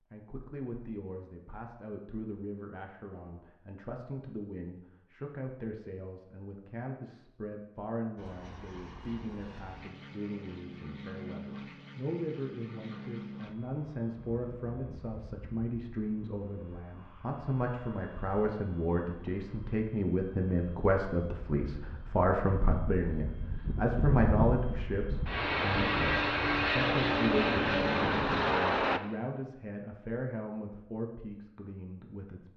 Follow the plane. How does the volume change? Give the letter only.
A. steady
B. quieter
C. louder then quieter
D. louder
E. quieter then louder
E.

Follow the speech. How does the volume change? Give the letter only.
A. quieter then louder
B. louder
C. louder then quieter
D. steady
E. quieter
C.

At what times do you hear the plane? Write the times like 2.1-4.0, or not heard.
8.2-29.0.